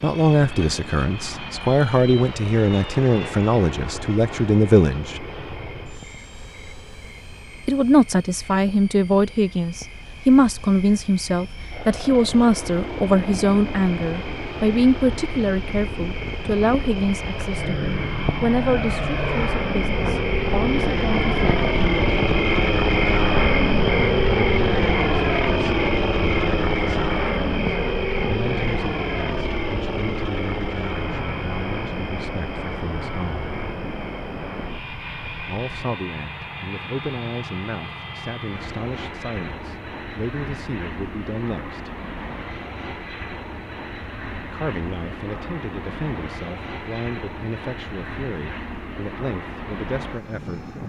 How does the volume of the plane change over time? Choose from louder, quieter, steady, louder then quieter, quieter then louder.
louder then quieter.